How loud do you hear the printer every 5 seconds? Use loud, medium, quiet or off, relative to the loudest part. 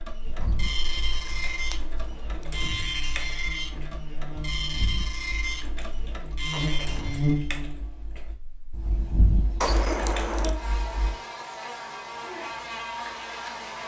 loud, loud, off.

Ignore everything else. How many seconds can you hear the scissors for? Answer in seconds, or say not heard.
4 s.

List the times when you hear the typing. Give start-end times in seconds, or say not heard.
0.2-11.2.